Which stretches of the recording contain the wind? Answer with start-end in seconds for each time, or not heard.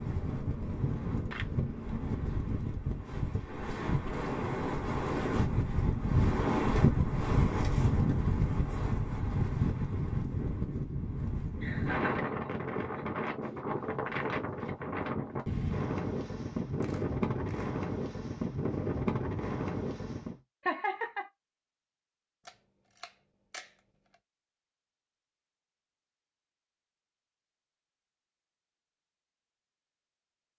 0.0-20.4.